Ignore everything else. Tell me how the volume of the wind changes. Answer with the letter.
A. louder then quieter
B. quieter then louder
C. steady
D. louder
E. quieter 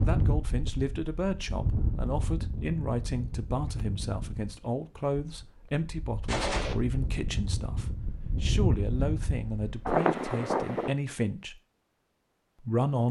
B.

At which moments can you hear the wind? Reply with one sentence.
You can hear the wind from 0.0 to 10.9 s.